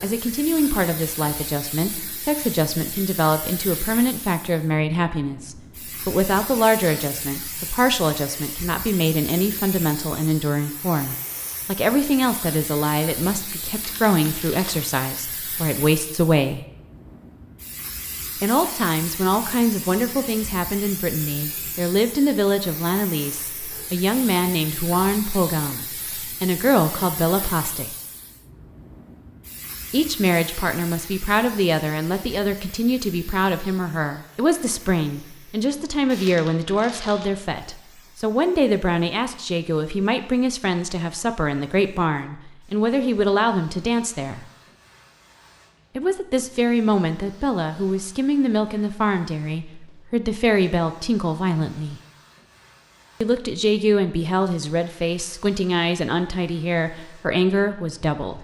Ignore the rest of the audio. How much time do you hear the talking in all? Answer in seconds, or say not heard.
52 s.